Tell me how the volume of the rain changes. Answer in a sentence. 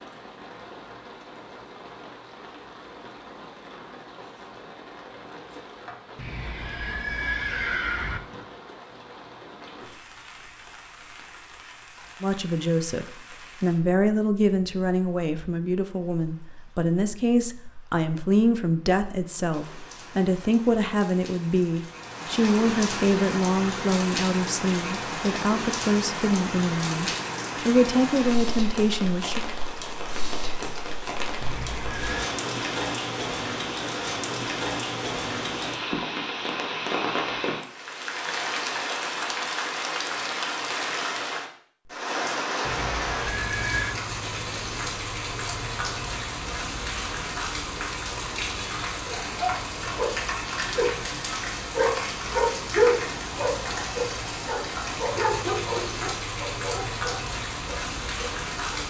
The loudness of the rain goes up.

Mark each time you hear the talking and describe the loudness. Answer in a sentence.
The talking can be heard from 12.2 to 29.4 s, at a steady volume.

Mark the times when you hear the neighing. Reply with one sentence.
You can hear the neighing from 6.2 to 8.2 s, from 31.4 to 32.4 s and from 42.6 to 44.0 s.